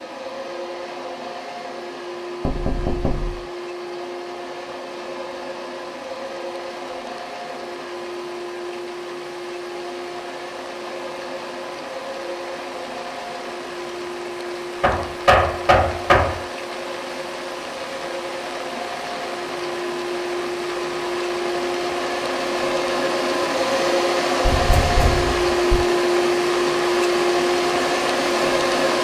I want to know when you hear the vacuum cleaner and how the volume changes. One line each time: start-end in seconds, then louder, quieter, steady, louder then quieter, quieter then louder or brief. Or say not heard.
0.0-28.9 louder.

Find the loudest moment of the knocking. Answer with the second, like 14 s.
15 s.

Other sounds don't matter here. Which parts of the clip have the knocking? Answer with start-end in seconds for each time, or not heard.
2.5-3.4, 14.8-16.4, 24.4-25.9.